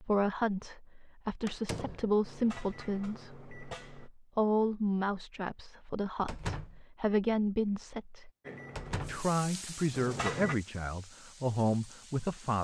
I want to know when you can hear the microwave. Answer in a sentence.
You can hear the microwave from 1.9 to 4.1 s and from 8.4 to 10.6 s.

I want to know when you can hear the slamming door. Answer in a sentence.
The slamming door can be heard from 1.4 to 2.1 s, from 6.2 to 6.8 s and from 8.8 to 9.2 s.